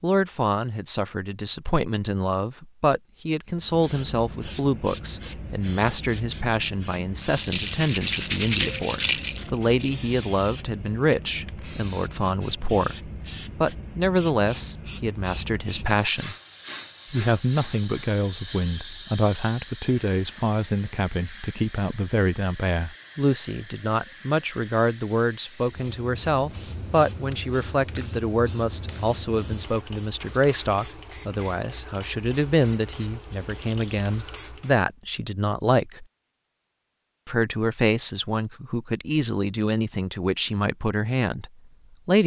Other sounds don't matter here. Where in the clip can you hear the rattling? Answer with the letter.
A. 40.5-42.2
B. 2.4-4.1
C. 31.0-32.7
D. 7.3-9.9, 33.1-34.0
D.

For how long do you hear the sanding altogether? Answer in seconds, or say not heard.
2 s.